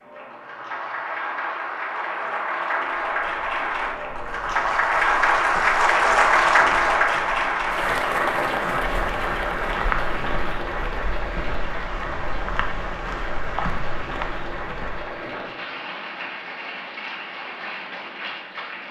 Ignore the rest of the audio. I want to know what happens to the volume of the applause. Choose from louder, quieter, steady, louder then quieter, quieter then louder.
louder then quieter.